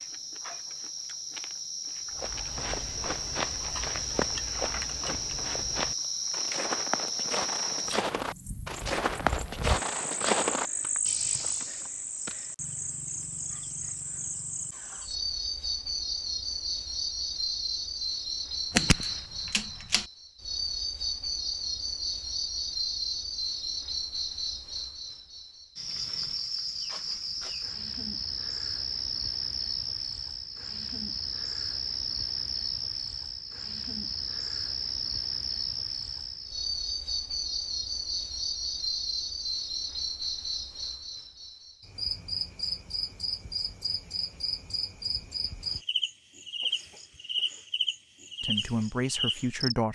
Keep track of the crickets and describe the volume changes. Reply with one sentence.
The volume of the crickets stays about the same.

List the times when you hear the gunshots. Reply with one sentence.
You can hear the gunshots from 18.7 to 20.1 s.